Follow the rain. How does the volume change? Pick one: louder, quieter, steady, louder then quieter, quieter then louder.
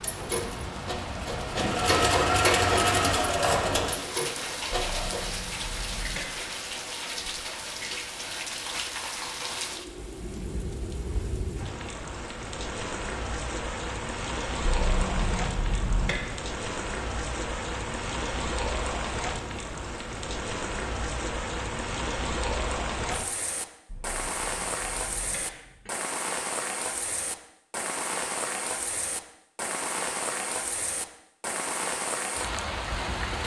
steady.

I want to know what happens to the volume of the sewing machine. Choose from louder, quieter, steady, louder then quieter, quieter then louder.
louder then quieter.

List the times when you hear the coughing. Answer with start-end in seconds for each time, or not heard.
4.7-6.3, 14.6-16.2, 23.9-25.9.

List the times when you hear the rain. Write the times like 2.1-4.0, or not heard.
0.0-33.4.